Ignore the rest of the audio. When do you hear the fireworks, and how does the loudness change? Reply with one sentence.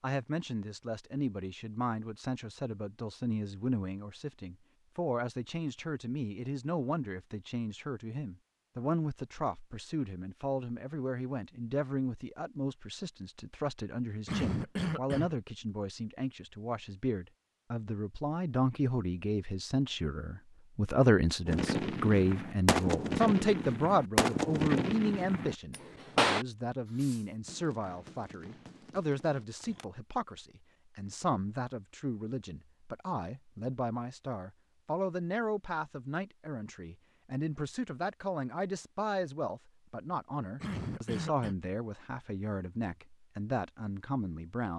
The fireworks can be heard from 21.4 to 29.9 s, getting quieter.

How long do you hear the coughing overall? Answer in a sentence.
The coughing can be heard for 2 seconds in total.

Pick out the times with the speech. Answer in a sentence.
You can hear the speech from 0.0 to 44.7 s.